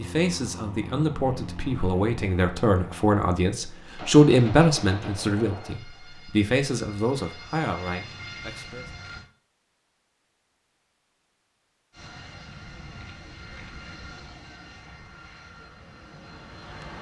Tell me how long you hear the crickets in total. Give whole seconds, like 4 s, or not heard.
not heard.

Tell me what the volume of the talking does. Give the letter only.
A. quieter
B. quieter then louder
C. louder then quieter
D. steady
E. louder
C.